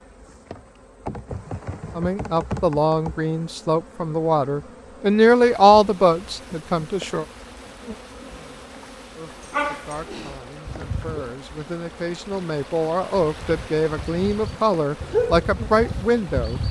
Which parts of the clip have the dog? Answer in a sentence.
The dog can be heard from 9.4 to 11.2 s and from 13.2 to 16.6 s.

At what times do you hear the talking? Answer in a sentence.
The talking can be heard from 1.9 to 7.2 s and from 9.2 to 16.6 s.